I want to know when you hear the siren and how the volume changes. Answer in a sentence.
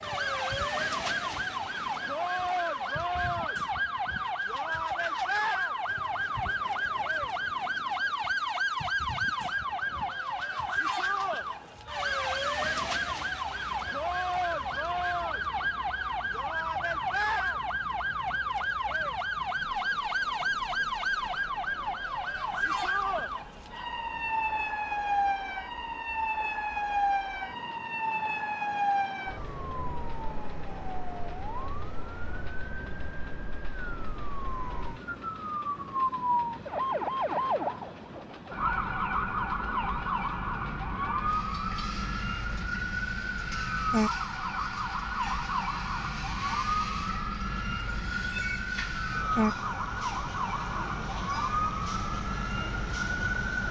You can hear the siren from 0.0 to 53.6 s, at a steady volume.